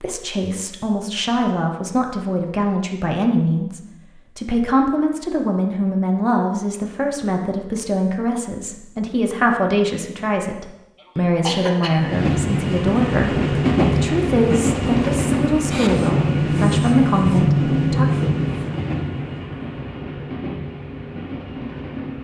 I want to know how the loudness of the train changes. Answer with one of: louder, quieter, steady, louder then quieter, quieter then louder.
quieter.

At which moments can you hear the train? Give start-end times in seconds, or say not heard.
11.9-22.1.